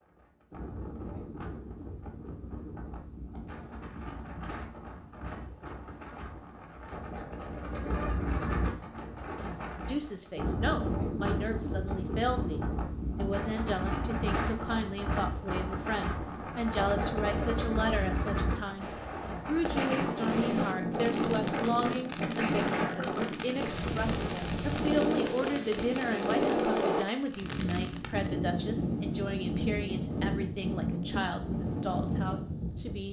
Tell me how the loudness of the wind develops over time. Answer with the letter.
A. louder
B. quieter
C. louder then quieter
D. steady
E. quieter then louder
A.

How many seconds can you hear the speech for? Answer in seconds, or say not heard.
23 s.